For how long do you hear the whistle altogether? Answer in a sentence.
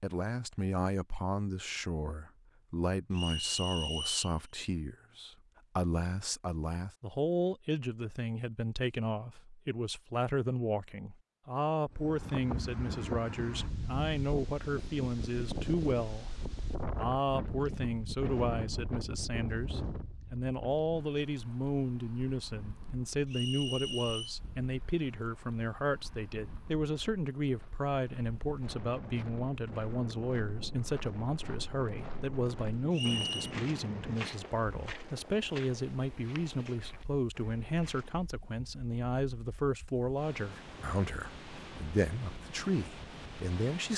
You can hear the whistle for 3 seconds altogether.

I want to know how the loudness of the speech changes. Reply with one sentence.
The loudness of the speech stays about the same.